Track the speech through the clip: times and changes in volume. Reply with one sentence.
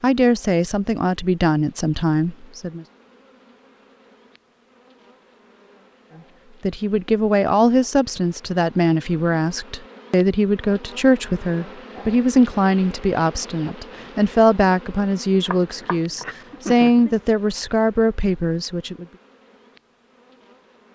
You can hear the speech briefly from 0.0 to 2.9 s; and from 6.6 to 19.1 s, at a steady volume.